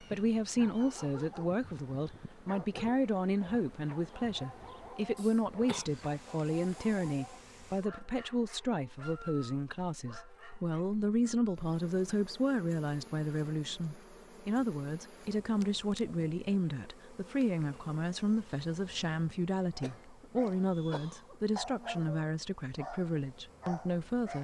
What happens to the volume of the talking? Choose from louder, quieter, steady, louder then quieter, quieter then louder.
steady.